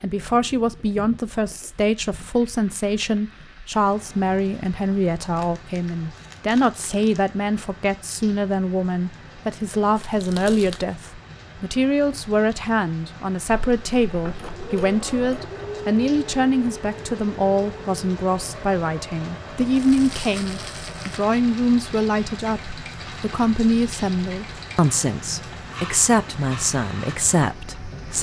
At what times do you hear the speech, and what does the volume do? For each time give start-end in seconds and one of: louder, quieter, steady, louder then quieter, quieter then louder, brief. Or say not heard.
0.0-28.1 steady.